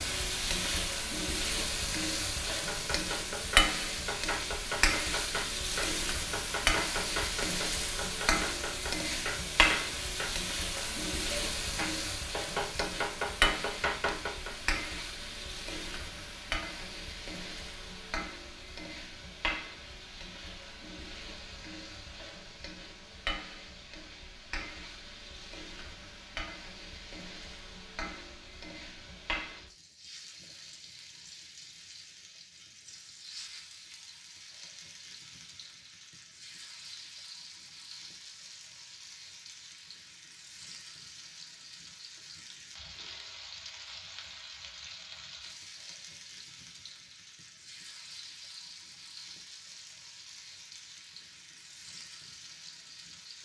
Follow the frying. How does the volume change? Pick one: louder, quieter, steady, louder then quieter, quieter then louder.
quieter.